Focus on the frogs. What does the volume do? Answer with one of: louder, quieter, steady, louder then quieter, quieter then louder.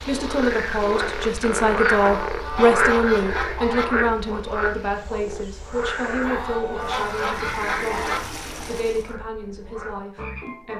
quieter.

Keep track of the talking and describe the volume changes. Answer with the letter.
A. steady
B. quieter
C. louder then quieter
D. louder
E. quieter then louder
B.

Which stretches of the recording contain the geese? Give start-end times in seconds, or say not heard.
2.0-3.9, 6.2-8.2.